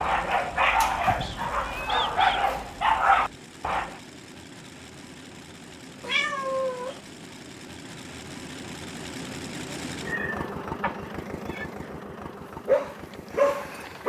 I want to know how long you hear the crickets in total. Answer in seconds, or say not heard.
not heard.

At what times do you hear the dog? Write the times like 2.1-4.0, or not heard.
0.0-4.0, 12.7-14.0.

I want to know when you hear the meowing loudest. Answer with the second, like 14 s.
6 s.